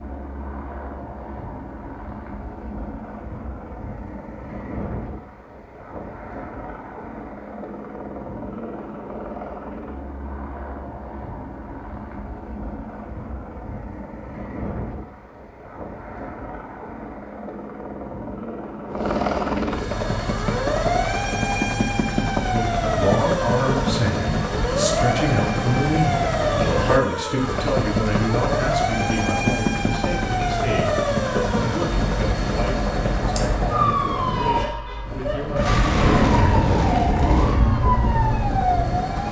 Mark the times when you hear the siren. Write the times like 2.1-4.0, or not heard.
19.9-39.2.